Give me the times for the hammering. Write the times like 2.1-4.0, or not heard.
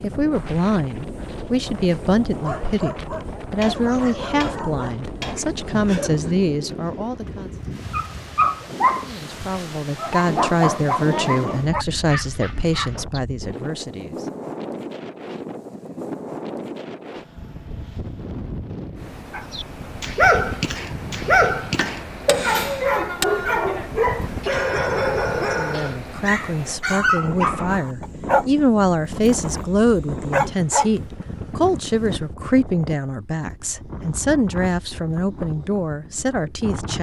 3.6-5.5, 21.8-23.2.